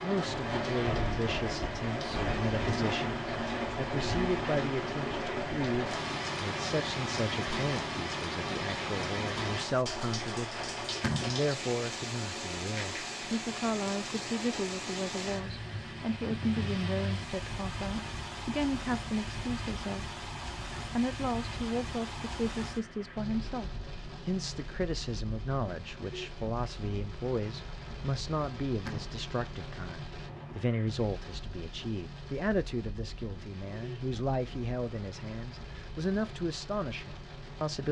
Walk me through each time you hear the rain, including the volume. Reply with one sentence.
You can hear the rain from 0.0 to 37.8 s, getting quieter.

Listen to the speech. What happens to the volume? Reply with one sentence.
The volume of the speech stays about the same.